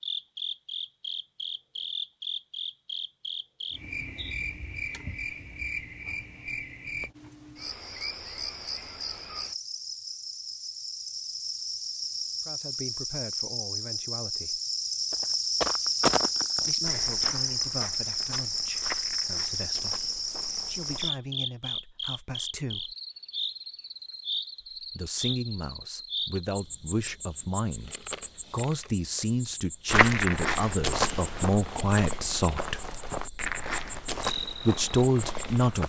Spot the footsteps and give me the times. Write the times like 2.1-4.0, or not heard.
15.1-21.1, 29.9-35.8.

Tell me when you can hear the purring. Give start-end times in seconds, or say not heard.
not heard.